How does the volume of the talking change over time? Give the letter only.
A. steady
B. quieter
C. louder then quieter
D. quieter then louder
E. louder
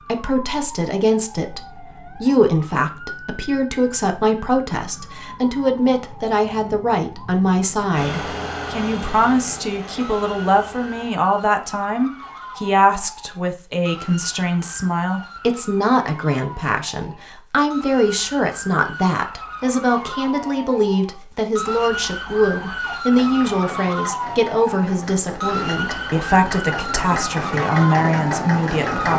A.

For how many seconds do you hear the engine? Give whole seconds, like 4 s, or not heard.
9 s.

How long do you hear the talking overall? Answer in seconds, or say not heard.
29 s.